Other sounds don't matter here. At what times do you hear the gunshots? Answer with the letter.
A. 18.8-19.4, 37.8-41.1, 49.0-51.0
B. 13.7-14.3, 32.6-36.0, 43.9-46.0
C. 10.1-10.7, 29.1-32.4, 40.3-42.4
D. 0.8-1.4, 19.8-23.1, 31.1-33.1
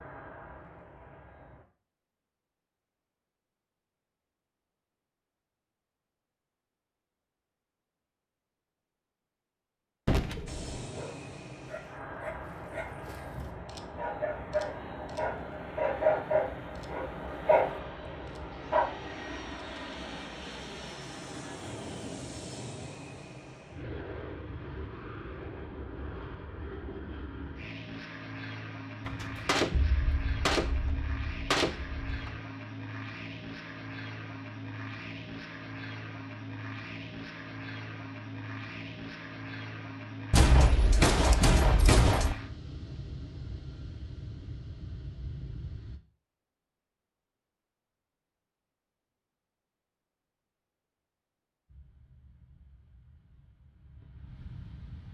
C.